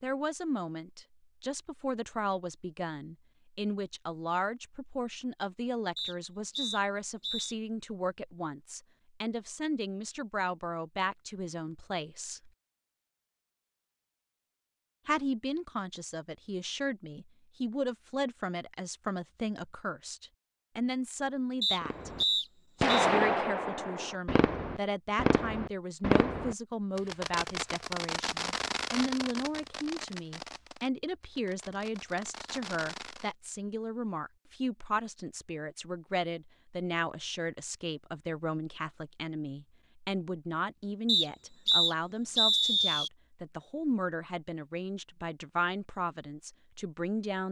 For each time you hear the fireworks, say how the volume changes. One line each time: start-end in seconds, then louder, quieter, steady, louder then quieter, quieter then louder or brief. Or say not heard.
21.8-33.3 quieter.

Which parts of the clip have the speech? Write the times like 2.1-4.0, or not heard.
0.0-12.5, 15.1-22.1, 22.8-47.4.